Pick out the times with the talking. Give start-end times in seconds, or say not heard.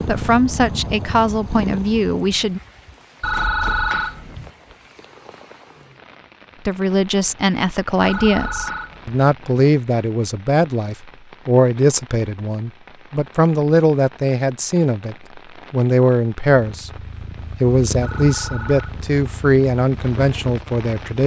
0.1-2.6, 6.7-16.9, 17.6-21.2.